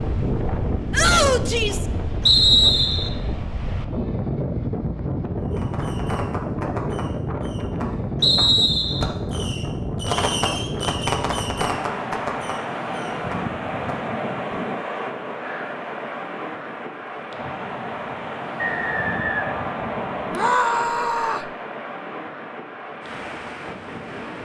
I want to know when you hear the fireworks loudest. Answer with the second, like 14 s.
10 s.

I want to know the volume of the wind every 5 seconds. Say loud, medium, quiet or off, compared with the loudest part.
loud, loud, loud, loud, medium.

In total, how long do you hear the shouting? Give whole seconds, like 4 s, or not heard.
2 s.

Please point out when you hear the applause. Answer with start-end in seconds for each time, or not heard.
not heard.